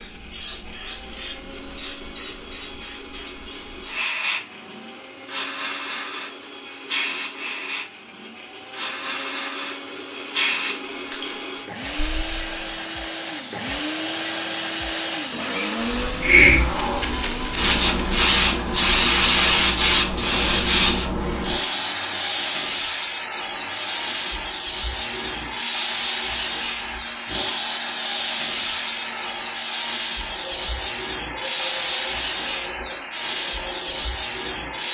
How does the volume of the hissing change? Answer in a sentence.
The loudness of the hissing goes up, then down.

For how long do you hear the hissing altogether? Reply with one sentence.
You can hear the hissing for 35 seconds altogether.